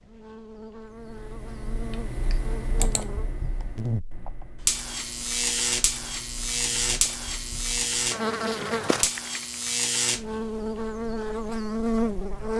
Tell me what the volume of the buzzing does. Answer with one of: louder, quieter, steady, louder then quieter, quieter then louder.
louder.